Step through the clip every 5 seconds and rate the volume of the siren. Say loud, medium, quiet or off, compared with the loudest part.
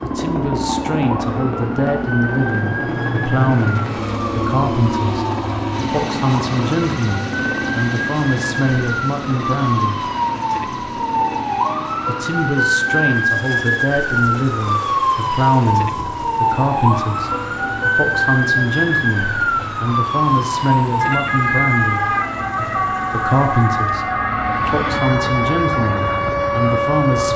medium, medium, loud, loud, loud, loud.